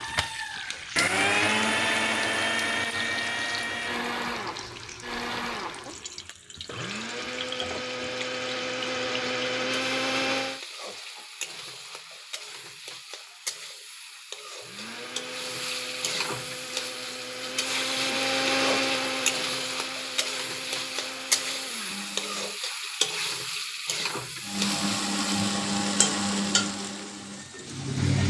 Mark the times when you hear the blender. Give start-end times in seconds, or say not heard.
0.0-10.6, 14.6-22.6, 24.4-28.2.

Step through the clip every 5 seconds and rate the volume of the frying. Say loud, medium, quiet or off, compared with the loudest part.
medium, medium, medium, loud, loud, loud.